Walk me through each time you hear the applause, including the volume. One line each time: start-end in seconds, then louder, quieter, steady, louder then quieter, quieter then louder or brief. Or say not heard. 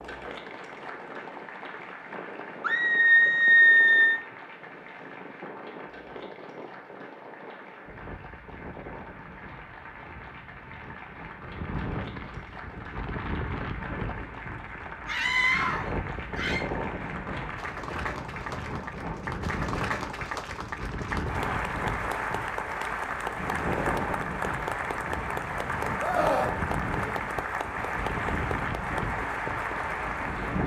0.0-30.6 louder.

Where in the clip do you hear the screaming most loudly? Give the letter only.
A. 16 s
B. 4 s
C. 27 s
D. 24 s
B.